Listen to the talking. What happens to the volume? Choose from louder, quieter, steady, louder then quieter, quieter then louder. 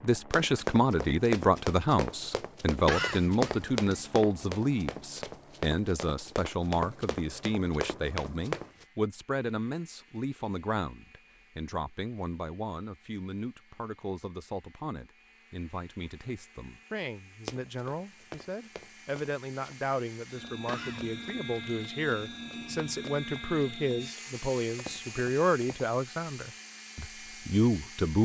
quieter then louder.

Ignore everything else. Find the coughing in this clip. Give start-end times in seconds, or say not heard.
2.9-4.0, 20.6-21.1.